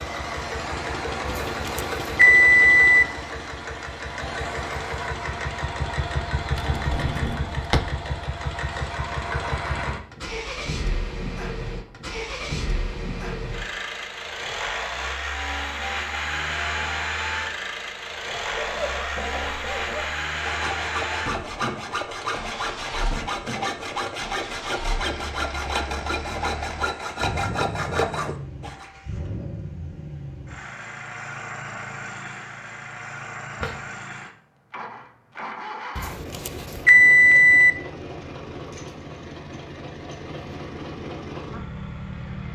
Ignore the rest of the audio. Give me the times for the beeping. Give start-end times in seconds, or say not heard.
1.2-3.0, 36.0-37.7.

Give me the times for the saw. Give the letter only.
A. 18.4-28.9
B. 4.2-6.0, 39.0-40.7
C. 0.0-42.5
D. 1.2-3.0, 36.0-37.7
A.